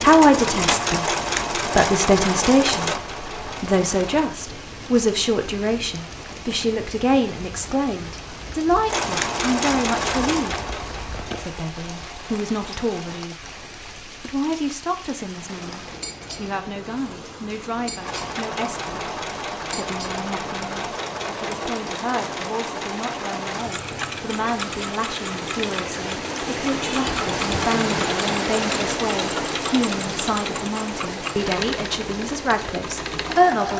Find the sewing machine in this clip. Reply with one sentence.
The sewing machine can be heard from 0.0 to 4.3 s, from 8.8 to 13.3 s and from 17.9 to 33.7 s.